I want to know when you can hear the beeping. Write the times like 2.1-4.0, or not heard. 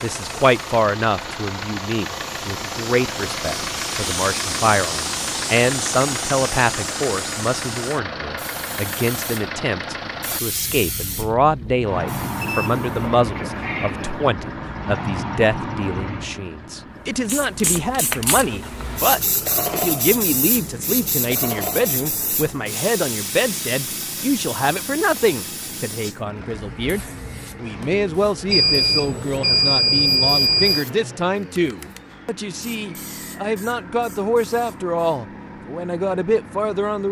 12.4-14.3, 28.4-30.9.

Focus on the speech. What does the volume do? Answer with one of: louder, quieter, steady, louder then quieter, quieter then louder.
steady.